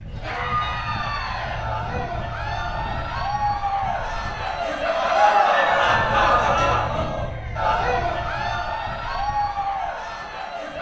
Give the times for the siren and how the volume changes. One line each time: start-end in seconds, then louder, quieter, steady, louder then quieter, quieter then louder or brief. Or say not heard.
not heard.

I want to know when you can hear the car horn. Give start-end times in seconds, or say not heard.
not heard.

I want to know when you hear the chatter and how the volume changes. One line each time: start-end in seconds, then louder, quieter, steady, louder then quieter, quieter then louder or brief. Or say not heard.
0.1-10.7 louder then quieter.